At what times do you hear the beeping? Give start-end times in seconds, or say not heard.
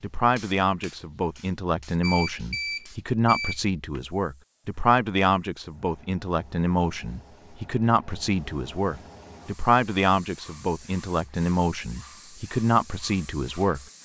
2.0-3.6.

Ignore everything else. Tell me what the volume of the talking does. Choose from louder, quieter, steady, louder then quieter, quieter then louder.
steady.